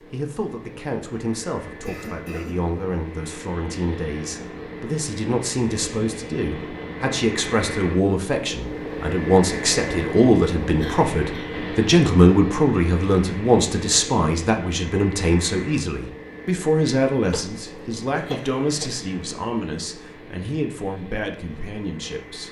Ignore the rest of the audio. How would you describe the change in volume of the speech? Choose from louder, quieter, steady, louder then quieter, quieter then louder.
louder then quieter.